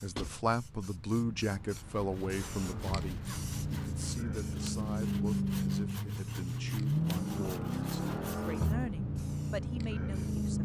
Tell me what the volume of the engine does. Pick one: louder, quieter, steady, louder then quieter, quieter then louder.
louder.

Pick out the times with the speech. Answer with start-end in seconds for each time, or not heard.
0.0-10.6.